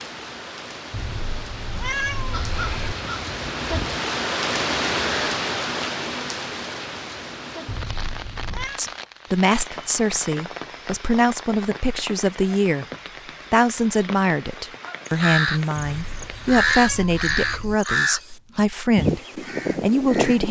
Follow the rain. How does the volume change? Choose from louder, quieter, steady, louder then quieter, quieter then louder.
louder then quieter.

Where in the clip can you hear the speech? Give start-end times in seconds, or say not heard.
8.8-12.8, 13.5-20.4.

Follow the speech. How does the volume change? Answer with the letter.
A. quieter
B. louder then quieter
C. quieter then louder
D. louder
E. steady
E.